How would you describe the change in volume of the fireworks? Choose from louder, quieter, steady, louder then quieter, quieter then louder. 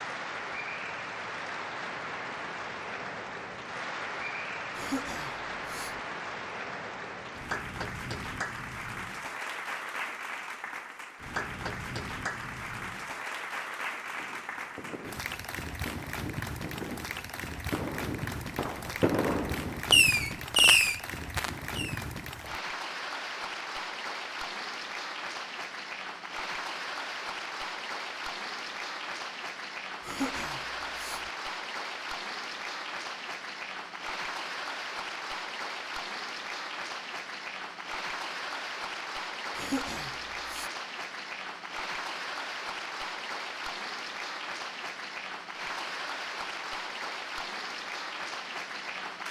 louder.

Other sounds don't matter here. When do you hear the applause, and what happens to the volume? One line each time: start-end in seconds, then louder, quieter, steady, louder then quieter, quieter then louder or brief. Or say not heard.
0.0-49.2 steady.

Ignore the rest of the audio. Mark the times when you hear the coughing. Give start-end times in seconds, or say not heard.
4.8-6.0, 30.0-31.3, 39.5-40.7.